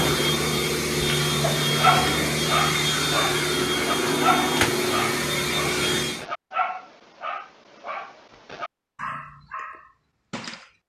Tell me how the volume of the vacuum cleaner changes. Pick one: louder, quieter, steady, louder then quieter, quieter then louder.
steady.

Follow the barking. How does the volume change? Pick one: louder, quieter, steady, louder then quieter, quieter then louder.
quieter.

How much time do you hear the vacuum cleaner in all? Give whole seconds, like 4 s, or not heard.
6 s.